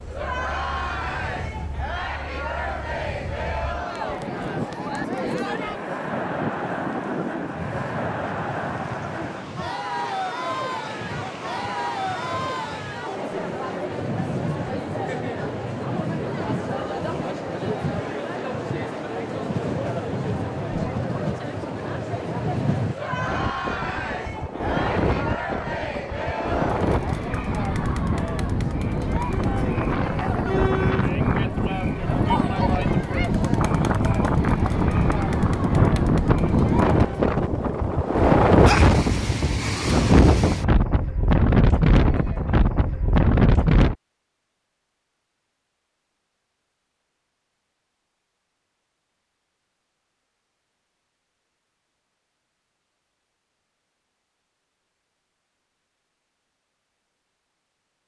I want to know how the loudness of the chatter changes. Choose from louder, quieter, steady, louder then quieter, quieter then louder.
steady.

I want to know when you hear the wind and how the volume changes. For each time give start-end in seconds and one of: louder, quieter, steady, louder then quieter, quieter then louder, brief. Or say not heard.
0.0-44.0 louder.